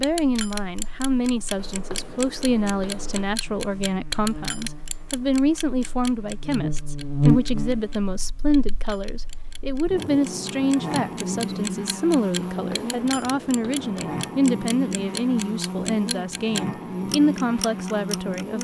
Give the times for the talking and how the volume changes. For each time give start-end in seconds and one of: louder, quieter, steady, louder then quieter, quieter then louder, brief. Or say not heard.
0.0-18.5 steady.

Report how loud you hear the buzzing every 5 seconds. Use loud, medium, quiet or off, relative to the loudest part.
quiet, loud, loud, loud.